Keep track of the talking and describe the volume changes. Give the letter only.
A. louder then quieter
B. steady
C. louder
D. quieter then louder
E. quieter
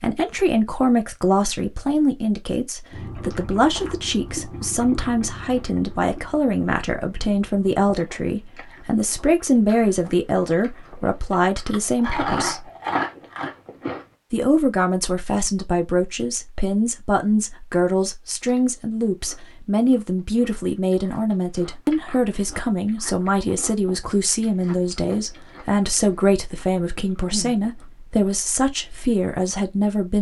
B.